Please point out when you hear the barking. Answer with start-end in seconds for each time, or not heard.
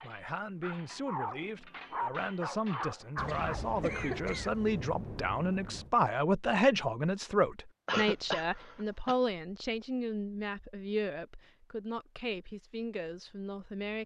0.0-3.6.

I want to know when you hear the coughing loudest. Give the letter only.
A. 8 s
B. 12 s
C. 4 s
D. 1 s
A.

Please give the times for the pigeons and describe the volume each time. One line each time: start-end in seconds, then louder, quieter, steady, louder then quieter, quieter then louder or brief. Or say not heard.
not heard.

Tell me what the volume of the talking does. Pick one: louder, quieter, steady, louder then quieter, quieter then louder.
louder then quieter.